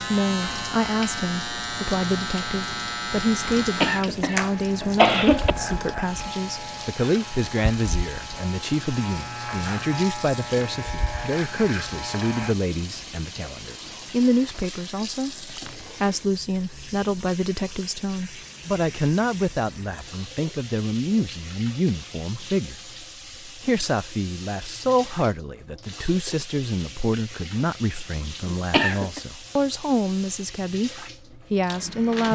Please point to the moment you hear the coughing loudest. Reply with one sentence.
The volume of the coughing peaks at 5 seconds.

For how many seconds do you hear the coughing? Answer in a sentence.
The coughing can be heard for 3 seconds in total.